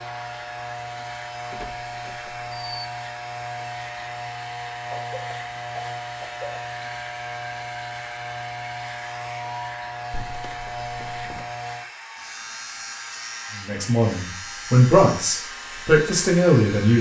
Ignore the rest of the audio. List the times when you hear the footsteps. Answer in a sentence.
You can't hear the footsteps here.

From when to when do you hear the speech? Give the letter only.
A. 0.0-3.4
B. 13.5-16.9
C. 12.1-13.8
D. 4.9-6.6
B.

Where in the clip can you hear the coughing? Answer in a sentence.
The coughing can be heard from 4.9 to 6.6 s.